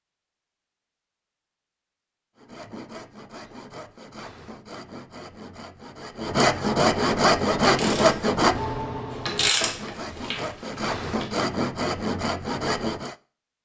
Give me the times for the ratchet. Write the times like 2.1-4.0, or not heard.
7.6-11.4.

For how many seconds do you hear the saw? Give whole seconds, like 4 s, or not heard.
11 s.